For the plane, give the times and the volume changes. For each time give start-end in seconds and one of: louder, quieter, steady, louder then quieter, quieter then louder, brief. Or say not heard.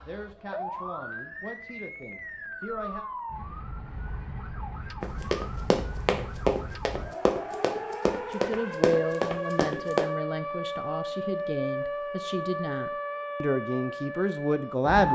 not heard.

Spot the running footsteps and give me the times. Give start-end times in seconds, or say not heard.
5.0-10.1.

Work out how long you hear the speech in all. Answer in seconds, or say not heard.
10 s.